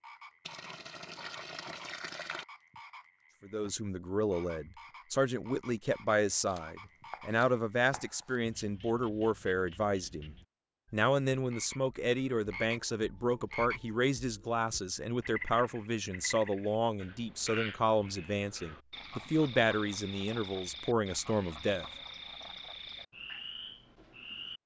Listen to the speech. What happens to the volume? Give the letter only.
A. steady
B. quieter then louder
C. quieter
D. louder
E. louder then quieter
A.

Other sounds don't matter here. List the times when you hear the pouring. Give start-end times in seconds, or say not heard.
0.5-2.5.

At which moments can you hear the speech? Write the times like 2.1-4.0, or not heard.
3.4-21.9.